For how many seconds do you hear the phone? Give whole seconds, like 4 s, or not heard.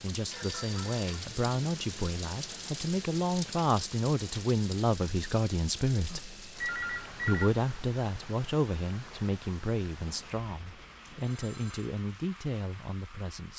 4 s.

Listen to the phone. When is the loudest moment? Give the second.
7 s.